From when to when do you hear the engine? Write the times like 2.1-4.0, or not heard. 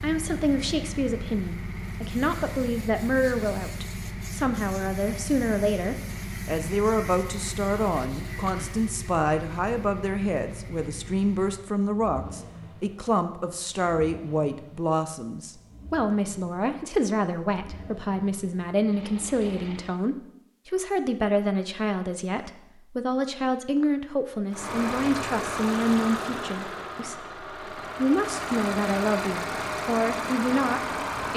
0.0-20.0, 24.5-31.3.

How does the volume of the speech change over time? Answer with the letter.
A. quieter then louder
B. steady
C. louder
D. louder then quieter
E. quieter
B.